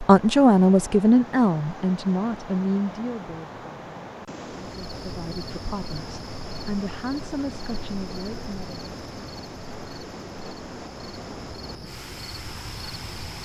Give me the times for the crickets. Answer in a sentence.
You can hear the crickets from 4.7 to 13.3 s.